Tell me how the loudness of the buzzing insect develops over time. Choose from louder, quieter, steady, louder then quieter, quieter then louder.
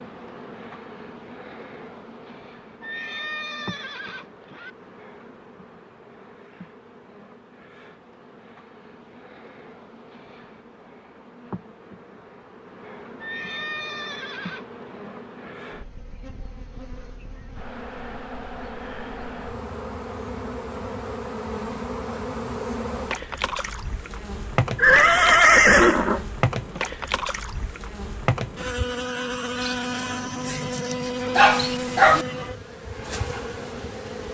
louder.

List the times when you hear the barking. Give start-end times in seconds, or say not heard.
31.4-32.2.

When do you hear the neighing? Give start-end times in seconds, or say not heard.
2.8-4.7, 13.2-14.8, 24.8-26.2.